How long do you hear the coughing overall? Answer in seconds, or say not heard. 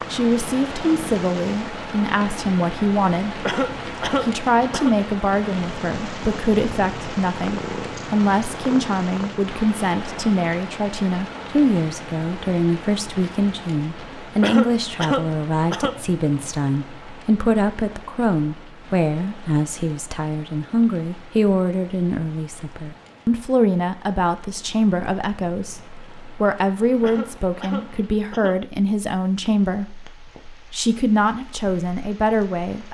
5 s.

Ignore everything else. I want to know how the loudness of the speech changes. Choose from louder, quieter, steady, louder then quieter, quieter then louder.
steady.